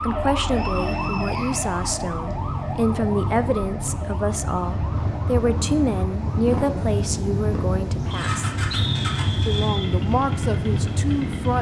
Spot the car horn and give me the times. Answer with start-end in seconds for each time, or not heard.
not heard.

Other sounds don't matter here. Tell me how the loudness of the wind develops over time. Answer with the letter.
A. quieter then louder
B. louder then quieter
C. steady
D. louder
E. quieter
D.